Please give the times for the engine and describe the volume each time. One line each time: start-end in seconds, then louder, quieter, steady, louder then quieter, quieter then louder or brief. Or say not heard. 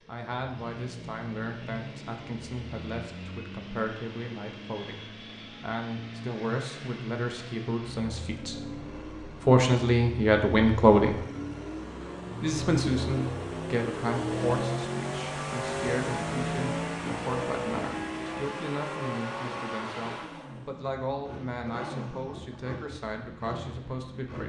0.0-24.4 louder then quieter.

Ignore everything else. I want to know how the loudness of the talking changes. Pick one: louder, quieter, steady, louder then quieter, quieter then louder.
louder then quieter.